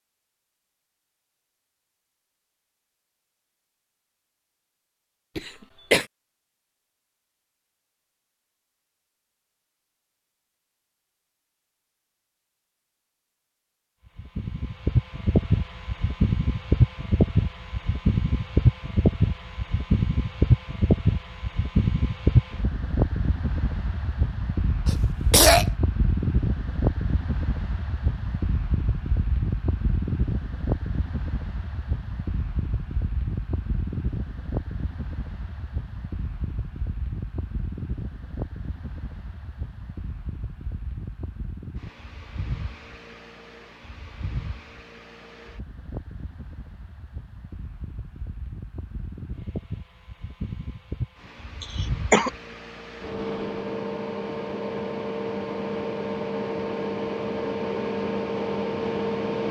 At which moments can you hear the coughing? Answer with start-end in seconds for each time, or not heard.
5.3-6.0, 24.9-25.6, 51.6-52.3.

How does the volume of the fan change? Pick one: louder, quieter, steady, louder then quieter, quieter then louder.
quieter then louder.